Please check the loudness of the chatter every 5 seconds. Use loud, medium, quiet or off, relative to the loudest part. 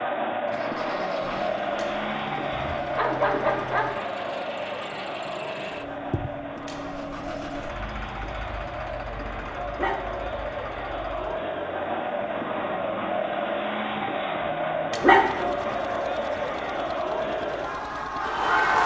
loud, medium, loud, loud.